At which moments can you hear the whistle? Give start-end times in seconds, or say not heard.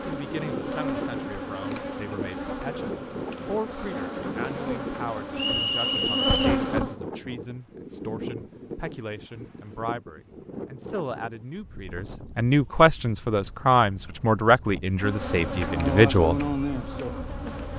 5.3-6.6.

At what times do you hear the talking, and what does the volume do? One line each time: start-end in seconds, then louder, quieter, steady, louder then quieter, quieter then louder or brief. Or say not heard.
0.1-16.4 louder.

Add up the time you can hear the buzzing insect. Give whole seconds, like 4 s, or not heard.
10 s.